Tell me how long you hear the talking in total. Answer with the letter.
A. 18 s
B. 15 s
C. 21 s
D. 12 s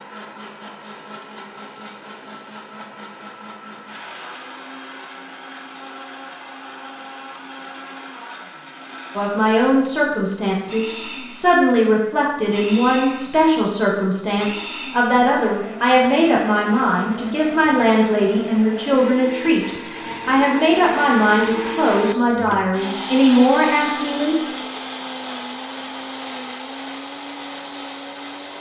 B.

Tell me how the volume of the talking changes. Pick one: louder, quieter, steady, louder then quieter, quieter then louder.
steady.